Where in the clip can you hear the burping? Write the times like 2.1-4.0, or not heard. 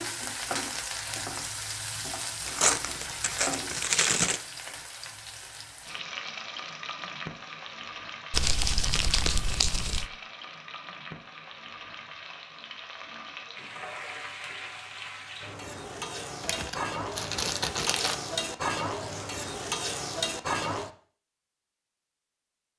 not heard.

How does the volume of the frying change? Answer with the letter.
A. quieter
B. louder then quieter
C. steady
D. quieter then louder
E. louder
D.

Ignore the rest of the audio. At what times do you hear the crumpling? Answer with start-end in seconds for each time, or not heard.
2.5-4.4, 8.3-10.1, 16.4-18.1.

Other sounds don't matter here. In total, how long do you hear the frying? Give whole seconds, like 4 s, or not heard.
21 s.